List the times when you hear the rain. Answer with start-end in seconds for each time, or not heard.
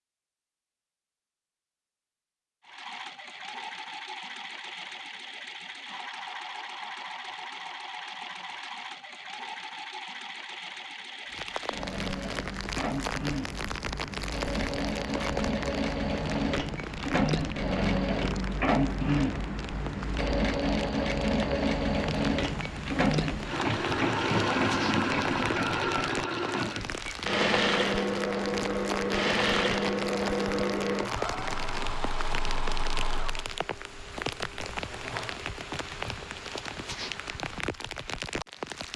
11.3-38.9.